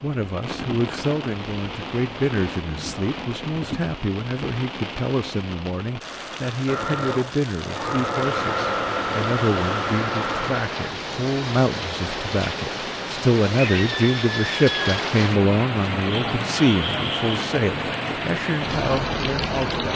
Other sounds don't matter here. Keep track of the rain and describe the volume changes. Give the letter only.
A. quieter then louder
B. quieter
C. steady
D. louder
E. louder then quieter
D.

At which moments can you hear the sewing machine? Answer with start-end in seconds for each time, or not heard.
6.7-10.6.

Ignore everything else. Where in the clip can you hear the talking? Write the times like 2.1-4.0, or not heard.
0.0-19.9.